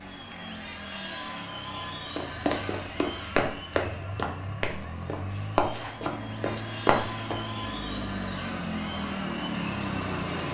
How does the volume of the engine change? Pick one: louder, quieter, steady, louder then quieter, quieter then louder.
louder.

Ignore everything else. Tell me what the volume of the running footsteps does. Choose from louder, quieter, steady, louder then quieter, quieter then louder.
quieter then louder.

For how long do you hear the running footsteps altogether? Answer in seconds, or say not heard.
6 s.